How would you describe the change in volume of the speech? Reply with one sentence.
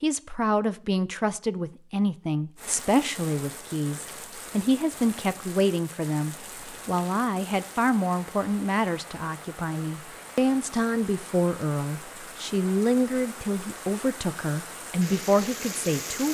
The loudness of the speech stays about the same.